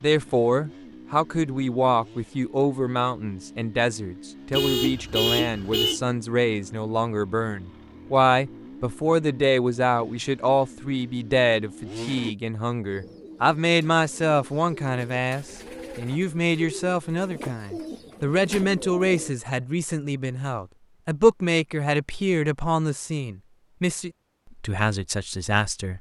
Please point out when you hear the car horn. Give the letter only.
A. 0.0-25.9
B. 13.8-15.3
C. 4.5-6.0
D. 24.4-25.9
C.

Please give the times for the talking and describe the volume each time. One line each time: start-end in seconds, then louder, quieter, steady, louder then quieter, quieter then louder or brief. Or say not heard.
0.0-25.9 steady.